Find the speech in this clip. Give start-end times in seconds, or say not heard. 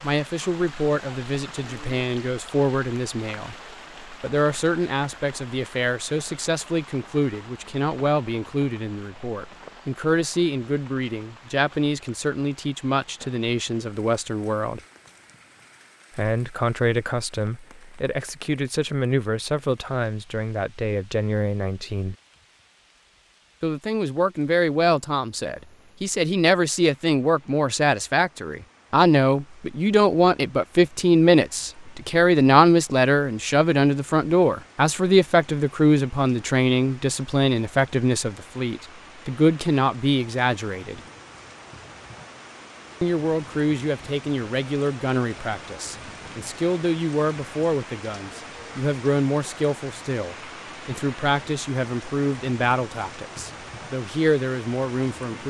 0.0-14.8, 16.1-22.1, 23.6-41.0, 43.0-55.4.